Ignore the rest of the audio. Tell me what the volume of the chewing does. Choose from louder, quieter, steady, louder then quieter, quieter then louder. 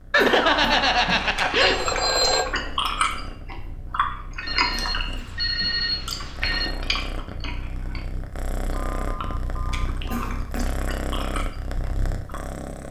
quieter.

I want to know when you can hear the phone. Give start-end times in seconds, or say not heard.
0.1-2.5, 4.4-6.8, 8.7-10.3.